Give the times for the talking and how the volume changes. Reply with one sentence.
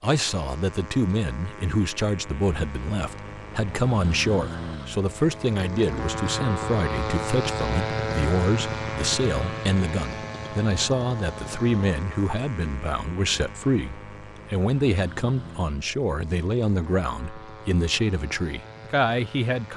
The talking can be heard from 0.0 to 19.7 s, at a steady volume.